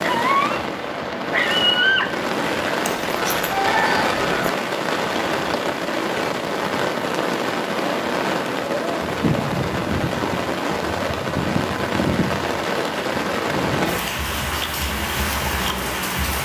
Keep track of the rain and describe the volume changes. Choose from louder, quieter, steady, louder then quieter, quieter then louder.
steady.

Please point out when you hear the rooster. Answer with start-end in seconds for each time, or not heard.
2.9-4.5.